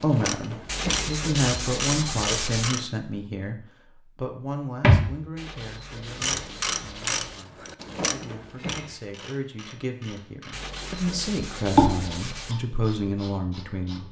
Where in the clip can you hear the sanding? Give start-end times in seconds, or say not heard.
0.7-2.7, 5.3-7.4, 10.5-12.6.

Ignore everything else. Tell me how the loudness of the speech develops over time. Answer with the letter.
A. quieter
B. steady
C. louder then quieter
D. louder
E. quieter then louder
E.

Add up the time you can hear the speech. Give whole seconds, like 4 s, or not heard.
14 s.